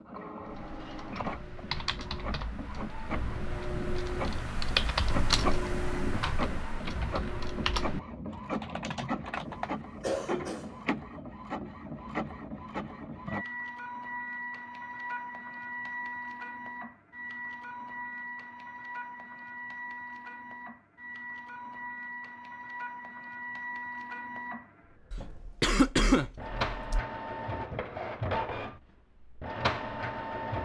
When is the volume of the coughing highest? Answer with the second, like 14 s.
26 s.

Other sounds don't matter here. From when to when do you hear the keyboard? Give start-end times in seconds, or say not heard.
0.5-9.8.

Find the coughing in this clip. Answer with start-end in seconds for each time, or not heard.
9.3-10.8, 25.1-27.0.